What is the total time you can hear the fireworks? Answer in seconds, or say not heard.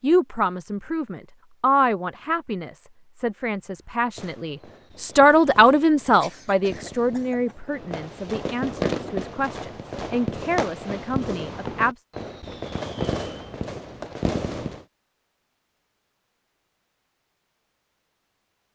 11 s.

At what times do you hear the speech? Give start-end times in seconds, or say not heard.
0.0-11.9.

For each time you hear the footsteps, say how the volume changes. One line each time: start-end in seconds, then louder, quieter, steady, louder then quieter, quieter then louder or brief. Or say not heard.
not heard.